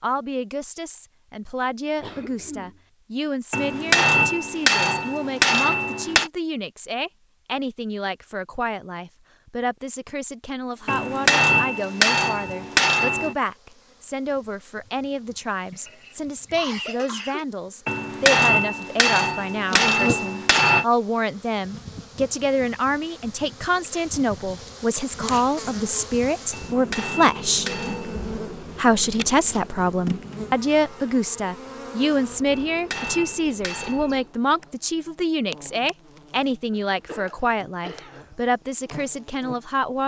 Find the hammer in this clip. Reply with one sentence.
The hammer can be heard from 3.5 to 6.3 s, from 10.8 to 13.3 s, from 17.9 to 20.9 s, from 26.5 to 28.2 s and from 32.5 to 34.2 s.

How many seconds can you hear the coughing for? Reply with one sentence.
You can hear the coughing for 4 seconds altogether.